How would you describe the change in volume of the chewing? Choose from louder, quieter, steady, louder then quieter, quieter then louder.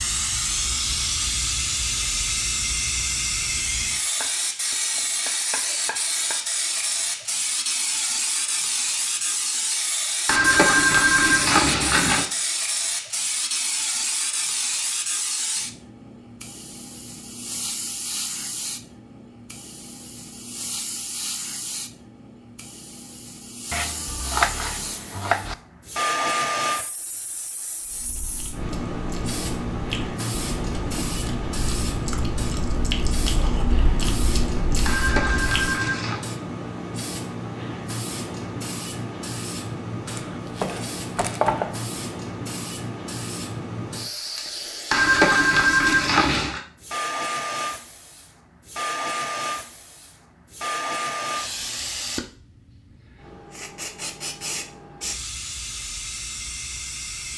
louder.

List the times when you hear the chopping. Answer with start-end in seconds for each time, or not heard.
4.0-6.5, 23.7-25.6, 40.0-41.9.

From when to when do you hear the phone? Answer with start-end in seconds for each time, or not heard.
10.2-12.2, 34.9-36.2, 44.9-46.6.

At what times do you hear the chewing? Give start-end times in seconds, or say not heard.
27.9-35.8.